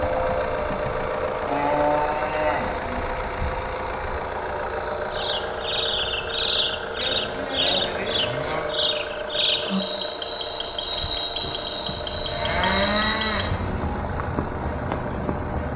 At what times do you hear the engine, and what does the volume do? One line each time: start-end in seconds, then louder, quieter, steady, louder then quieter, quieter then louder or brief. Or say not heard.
0.0-15.7 quieter.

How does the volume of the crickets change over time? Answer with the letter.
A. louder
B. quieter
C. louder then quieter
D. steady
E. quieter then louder
D.